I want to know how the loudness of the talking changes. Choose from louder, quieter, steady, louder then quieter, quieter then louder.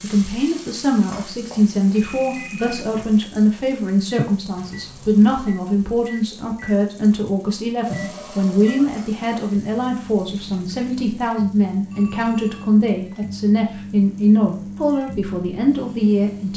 steady.